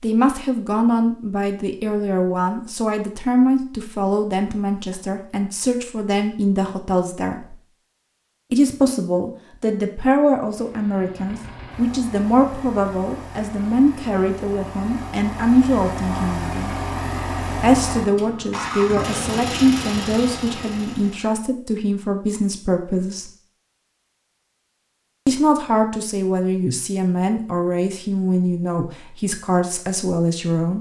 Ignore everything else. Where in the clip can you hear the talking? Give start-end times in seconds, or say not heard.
0.0-7.5, 8.5-16.8, 17.6-23.2, 25.2-30.7.